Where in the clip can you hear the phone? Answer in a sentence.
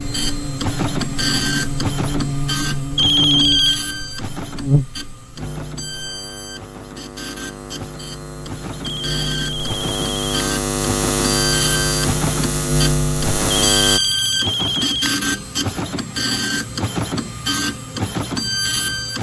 You can hear the phone from 3.0 to 3.8 s, from 8.8 to 10.2 s and from 13.5 to 15.1 s.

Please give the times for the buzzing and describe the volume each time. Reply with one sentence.
The buzzing can be heard from 0.0 to 14.0 s, getting quieter then louder.